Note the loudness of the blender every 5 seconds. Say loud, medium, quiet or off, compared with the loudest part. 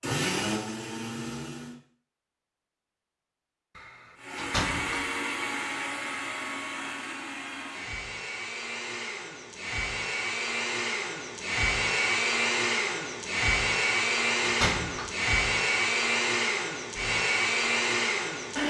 medium, medium, loud, loud.